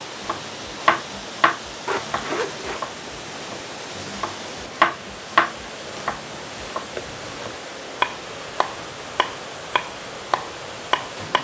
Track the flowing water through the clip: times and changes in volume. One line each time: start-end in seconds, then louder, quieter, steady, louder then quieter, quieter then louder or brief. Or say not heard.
0.0-11.3 steady.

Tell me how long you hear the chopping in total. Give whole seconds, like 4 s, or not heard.
11 s.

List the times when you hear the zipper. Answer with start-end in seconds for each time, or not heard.
1.9-2.8, 7.0-7.6.